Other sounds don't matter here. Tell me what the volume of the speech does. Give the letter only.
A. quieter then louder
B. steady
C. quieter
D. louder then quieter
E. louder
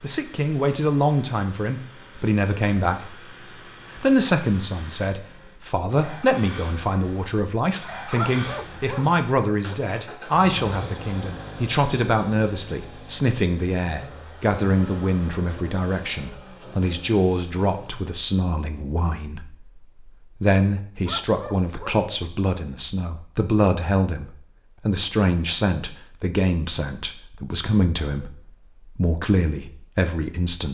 B.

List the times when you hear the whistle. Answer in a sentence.
The whistle can't be heard in this clip.